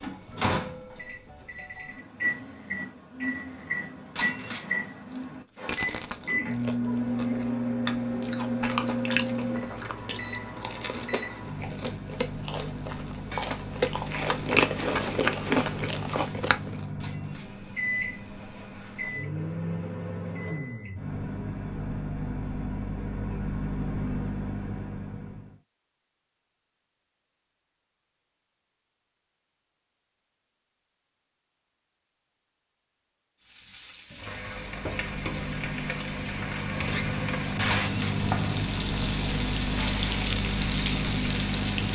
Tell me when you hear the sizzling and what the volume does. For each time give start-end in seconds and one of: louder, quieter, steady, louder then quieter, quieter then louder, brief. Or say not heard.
33.4-41.9 louder.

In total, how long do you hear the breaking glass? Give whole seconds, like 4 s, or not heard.
2 s.